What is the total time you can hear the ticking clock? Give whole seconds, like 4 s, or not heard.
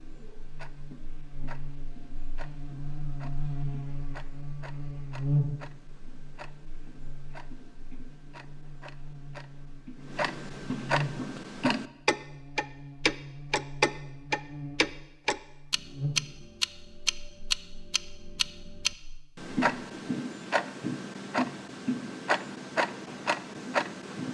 24 s.